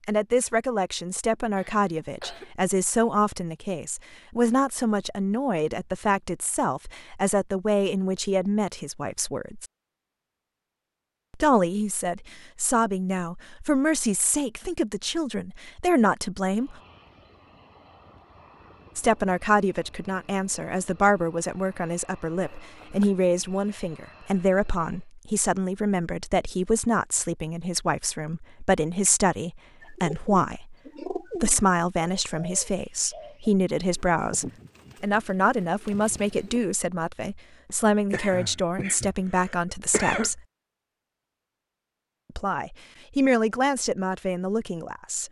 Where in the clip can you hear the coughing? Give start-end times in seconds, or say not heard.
1.6-2.5, 22.4-23.1, 37.6-40.3.